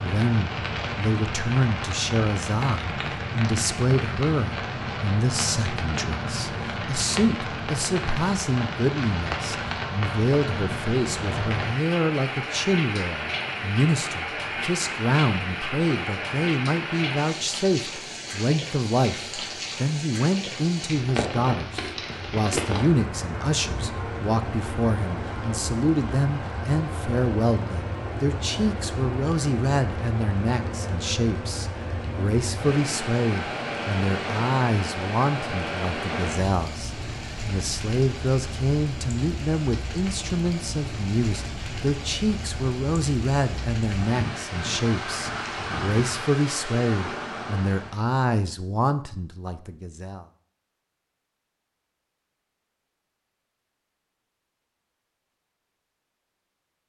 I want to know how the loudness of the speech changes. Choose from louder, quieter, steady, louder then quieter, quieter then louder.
steady.